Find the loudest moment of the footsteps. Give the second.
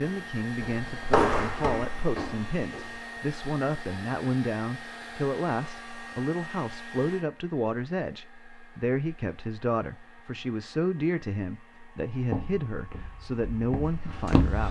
1 s.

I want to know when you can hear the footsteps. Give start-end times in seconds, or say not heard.
0.0-3.1, 12.2-14.6.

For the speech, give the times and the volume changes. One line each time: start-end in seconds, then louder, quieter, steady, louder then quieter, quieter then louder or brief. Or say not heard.
0.0-14.6 steady.